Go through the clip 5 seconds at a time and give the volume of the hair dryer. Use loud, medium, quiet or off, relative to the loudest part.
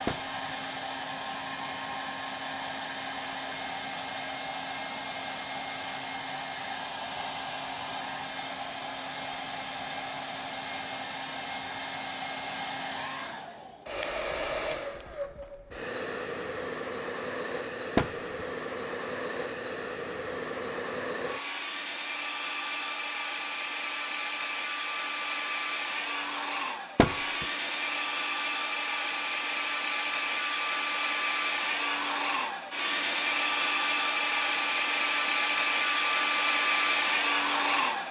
medium, medium, medium, medium, medium, medium, loud, loud.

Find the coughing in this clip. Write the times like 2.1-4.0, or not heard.
not heard.